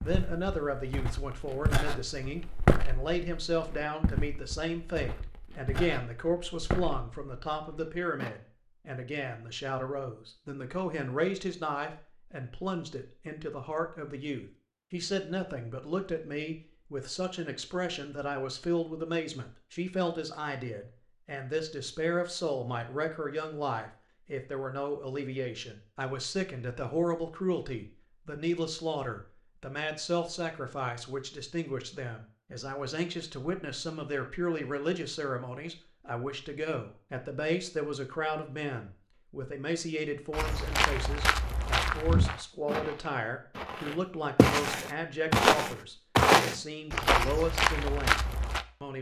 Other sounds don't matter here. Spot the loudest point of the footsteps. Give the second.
46 s.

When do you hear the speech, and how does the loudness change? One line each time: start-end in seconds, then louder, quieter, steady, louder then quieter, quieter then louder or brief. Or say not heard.
0.0-48.9 steady.